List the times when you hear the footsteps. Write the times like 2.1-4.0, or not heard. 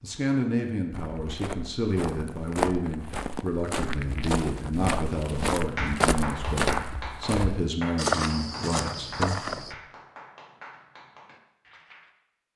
0.9-9.8.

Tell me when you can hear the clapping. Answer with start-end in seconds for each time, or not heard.
5.7-12.1.